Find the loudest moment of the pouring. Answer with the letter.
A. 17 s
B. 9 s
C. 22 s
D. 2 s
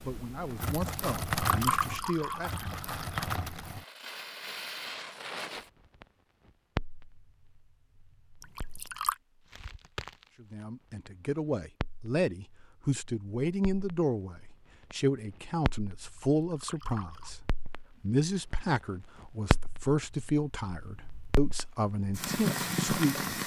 D.